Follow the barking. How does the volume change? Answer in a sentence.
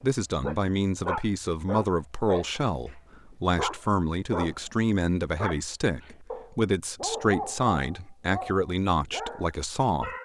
The volume of the barking goes down.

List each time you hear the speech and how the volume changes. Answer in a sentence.
The speech can be heard from 0.0 to 10.2 s, at a steady volume.